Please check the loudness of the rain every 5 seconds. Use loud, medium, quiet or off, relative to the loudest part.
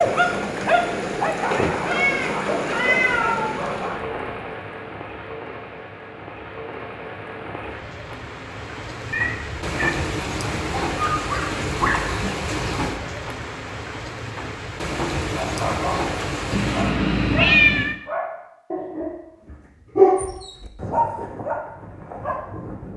loud, medium, loud, loud, off.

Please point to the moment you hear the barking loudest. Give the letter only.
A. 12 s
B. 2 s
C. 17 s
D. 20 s
D.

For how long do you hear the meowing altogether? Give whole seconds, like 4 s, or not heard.
4 s.